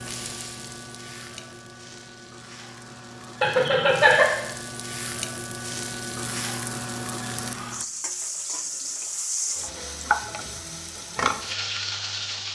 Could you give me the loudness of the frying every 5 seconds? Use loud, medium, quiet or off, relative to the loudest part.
medium, loud, loud.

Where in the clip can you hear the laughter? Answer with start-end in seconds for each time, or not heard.
3.4-4.2.